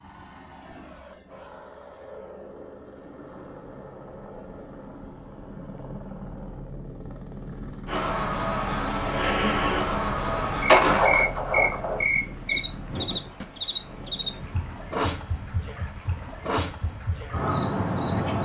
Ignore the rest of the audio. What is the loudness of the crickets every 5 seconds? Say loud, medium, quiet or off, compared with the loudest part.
off, loud, loud, loud.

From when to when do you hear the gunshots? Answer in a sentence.
The gunshots can be heard from 10.7 to 12.1 s.